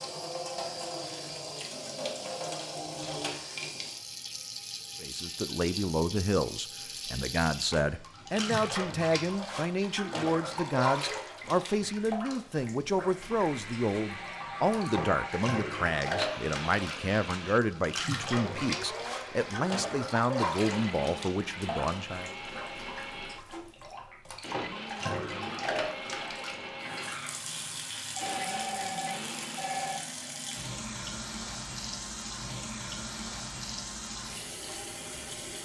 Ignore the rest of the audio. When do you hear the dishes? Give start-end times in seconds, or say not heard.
not heard.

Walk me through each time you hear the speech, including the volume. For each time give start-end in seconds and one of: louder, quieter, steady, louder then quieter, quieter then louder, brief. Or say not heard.
5.0-22.4 steady.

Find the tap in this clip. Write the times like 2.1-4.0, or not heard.
0.0-35.6.